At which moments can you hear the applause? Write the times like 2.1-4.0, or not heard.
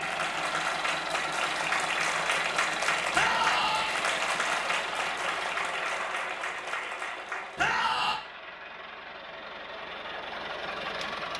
0.0-7.8.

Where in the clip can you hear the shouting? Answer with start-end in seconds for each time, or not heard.
3.1-4.0, 7.5-8.2.